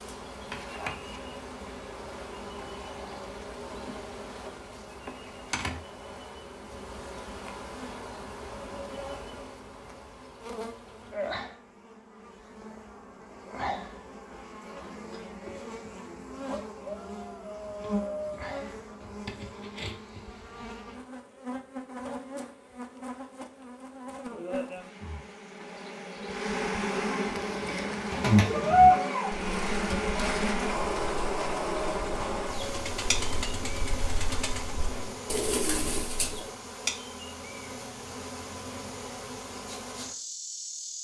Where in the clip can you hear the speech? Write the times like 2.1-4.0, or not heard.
not heard.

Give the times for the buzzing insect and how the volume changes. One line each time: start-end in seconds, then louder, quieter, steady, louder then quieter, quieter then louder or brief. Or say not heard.
0.0-41.0 louder then quieter.